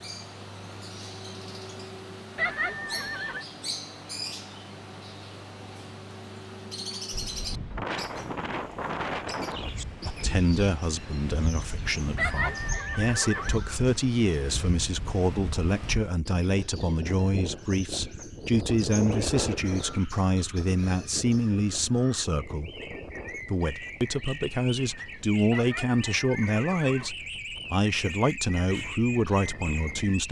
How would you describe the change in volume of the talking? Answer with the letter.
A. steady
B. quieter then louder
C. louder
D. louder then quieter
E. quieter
A.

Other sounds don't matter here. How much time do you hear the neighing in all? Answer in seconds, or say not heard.
4 s.